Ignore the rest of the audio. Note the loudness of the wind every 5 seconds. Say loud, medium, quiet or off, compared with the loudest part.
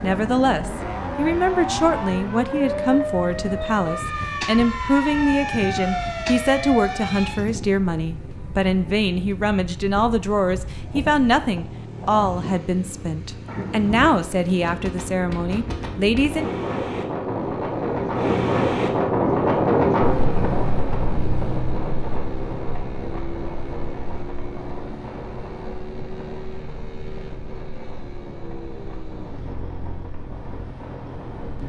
quiet, quiet, quiet, loud, medium, quiet, quiet.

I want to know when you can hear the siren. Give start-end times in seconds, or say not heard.
0.0-7.5.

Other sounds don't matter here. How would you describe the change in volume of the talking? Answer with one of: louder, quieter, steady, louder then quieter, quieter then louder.
steady.